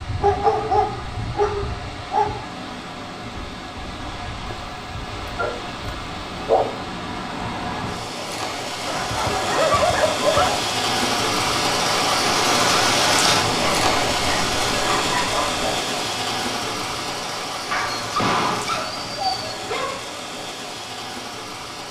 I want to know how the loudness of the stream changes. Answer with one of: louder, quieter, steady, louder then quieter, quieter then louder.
louder then quieter.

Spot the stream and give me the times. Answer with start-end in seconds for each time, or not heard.
0.0-21.8.